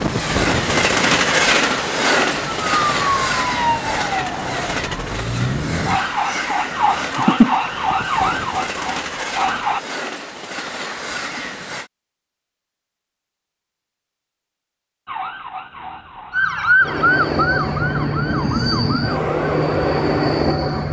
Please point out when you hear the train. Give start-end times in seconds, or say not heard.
0.0-11.9, 16.8-20.8.